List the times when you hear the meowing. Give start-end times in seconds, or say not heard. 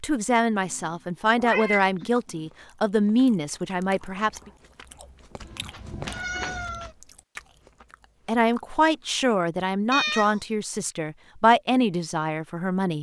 0.7-2.5, 5.4-7.0, 9.9-10.4.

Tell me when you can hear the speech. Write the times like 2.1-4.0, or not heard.
0.0-4.5, 8.2-12.9.